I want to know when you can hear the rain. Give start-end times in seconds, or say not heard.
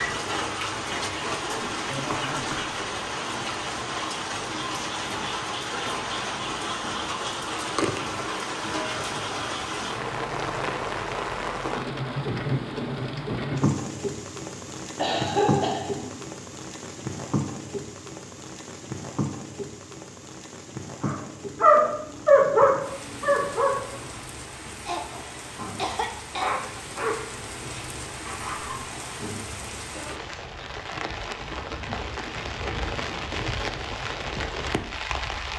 0.0-35.5.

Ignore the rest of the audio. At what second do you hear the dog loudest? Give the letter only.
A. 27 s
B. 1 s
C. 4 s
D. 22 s
D.